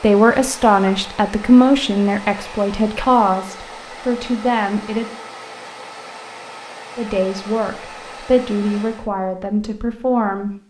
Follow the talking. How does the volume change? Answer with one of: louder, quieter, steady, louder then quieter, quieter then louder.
quieter.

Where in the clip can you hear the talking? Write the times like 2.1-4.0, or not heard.
0.0-5.0, 7.0-10.5.